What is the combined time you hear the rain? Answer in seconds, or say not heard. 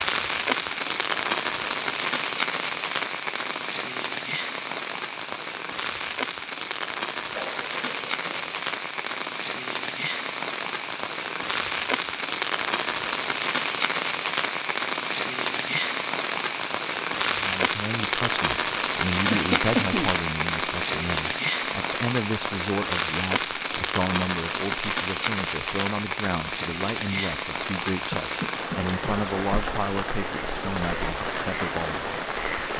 33 s.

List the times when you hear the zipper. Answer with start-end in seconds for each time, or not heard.
not heard.